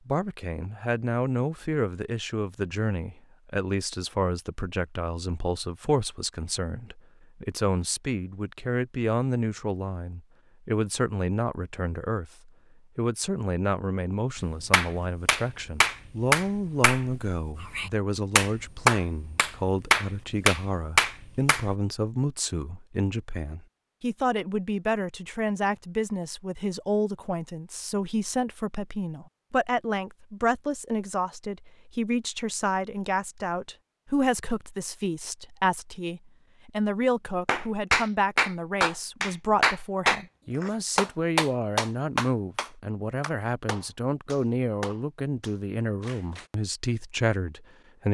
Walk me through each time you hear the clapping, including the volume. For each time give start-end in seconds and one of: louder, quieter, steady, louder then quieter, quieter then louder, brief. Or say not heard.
14.7-21.6 quieter then louder
37.5-46.5 quieter.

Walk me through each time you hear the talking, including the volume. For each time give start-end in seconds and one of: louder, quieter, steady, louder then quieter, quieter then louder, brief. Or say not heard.
0.1-48.1 steady.